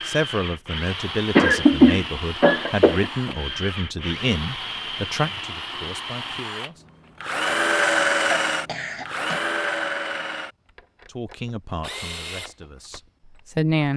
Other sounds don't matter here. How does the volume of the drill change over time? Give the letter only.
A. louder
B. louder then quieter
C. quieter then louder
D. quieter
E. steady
B.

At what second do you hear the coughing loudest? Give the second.
2 s.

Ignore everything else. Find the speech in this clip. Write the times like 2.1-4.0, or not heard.
0.1-6.8, 11.2-13.9.